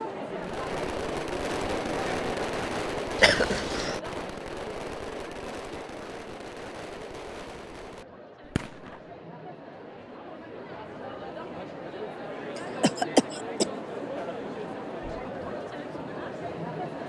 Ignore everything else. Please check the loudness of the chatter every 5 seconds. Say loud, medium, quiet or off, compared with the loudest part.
loud, medium, loud, loud.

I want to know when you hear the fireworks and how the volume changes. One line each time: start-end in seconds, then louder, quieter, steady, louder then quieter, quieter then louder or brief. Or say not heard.
0.3-9.2 quieter.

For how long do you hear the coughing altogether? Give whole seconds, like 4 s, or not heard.
2 s.